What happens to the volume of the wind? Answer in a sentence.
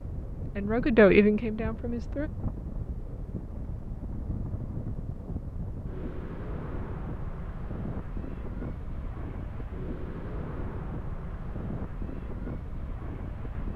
The volume of the wind stays about the same.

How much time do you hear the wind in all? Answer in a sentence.
You can hear the wind for 14 seconds altogether.